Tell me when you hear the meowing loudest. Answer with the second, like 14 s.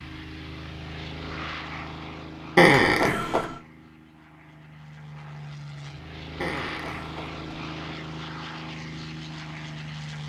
3 s.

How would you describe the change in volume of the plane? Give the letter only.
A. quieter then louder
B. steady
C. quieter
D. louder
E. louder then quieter
A.